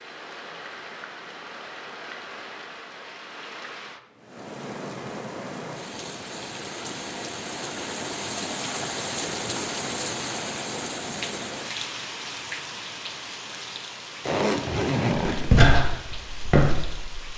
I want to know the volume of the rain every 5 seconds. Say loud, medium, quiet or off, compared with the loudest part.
medium, loud, loud, medium.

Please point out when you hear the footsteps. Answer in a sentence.
The footsteps can be heard from 15.2 to 17.3 s.